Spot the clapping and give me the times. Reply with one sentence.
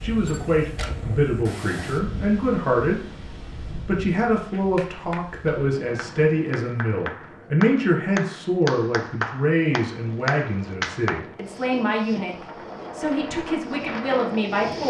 You can hear the clapping from 4.5 to 11.2 s.